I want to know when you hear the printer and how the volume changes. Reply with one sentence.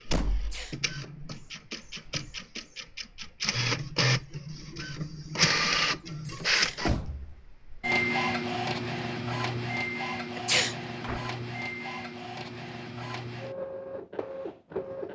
The printer can be heard from 0.0 to 15.1 s, getting louder then quieter.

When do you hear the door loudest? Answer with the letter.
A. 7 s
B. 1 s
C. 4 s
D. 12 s
A.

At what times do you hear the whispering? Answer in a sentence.
You can't hear the whispering here.